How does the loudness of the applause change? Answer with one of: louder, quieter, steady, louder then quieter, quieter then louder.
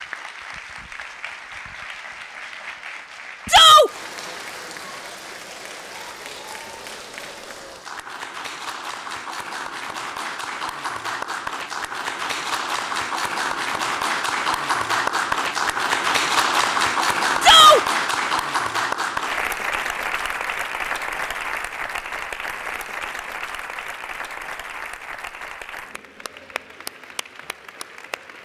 louder then quieter.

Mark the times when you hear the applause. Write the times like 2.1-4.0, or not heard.
0.0-28.4.